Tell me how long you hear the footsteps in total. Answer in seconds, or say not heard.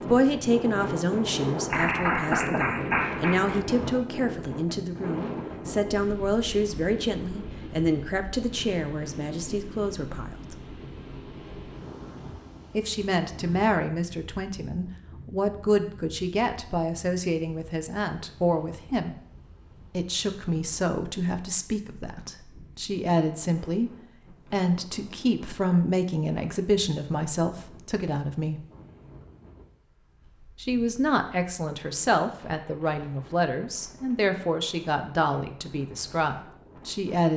not heard.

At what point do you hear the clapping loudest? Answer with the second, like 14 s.
2 s.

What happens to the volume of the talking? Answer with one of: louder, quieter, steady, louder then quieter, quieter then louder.
steady.